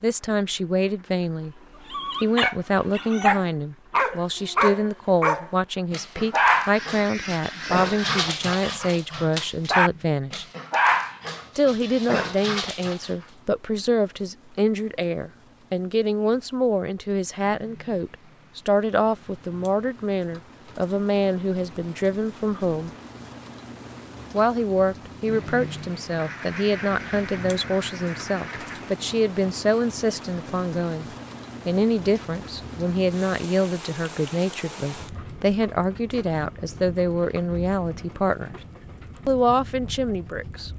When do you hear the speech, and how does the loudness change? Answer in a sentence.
The speech can be heard briefly from 0.0 to 1.6 s; from 2.2 to 10.4 s, at a steady volume; from 11.6 to 22.9 s, at a steady volume; from 24.3 to 31.1 s, at a steady volume; from 31.6 to 38.5 s, at a steady volume; and briefly from 39.2 to 40.7 s.